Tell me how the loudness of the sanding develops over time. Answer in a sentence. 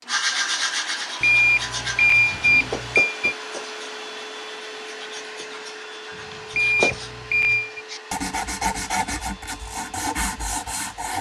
The volume of the sanding goes down, then up.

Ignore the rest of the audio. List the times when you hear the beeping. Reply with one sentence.
The beeping can be heard from 1.2 to 3.4 s and from 6.5 to 7.8 s.